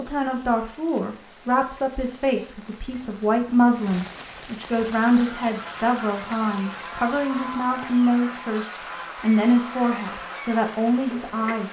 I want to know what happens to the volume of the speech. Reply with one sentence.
The volume of the speech stays about the same.